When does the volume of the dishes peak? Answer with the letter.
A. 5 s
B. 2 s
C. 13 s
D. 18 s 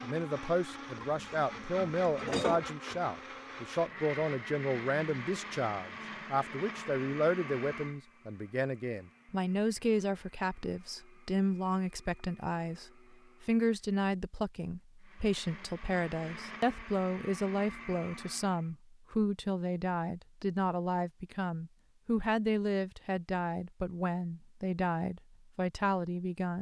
B.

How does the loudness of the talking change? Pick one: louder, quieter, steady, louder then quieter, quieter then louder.
steady.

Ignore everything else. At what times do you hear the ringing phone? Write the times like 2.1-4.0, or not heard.
not heard.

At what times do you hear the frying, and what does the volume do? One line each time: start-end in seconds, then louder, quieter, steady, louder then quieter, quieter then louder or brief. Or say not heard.
not heard.